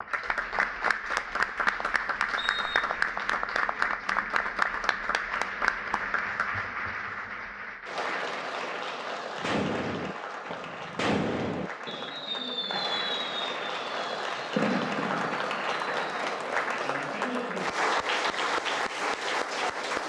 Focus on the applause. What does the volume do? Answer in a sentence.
The loudness of the applause goes down, then up.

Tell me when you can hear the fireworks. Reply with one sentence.
You can hear the fireworks from 9.3 to 16.1 s.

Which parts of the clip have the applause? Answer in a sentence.
The applause can be heard from 0.0 to 20.0 s.